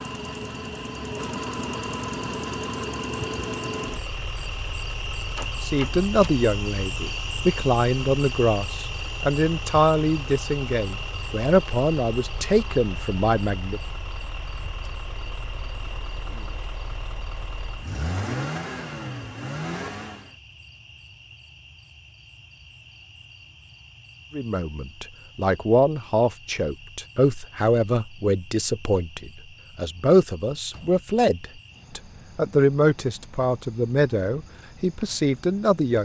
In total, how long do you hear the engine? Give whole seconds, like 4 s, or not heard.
20 s.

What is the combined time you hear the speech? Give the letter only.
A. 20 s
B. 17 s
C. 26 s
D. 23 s
A.